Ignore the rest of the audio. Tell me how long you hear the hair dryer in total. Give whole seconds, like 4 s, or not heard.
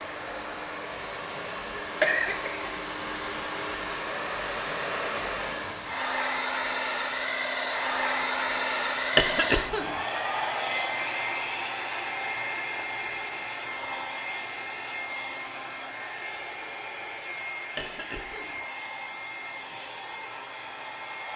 21 s.